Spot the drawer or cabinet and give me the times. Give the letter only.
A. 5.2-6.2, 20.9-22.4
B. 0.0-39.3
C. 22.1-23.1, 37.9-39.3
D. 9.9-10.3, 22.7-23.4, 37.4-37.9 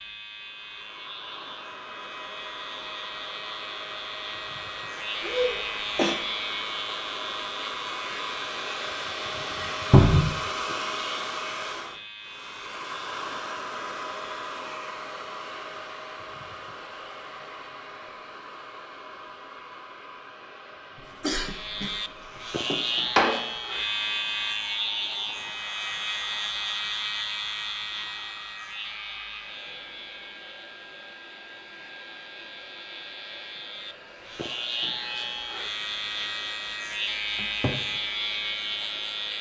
D.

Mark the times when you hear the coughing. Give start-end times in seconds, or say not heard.
5.2-6.2, 20.9-22.4.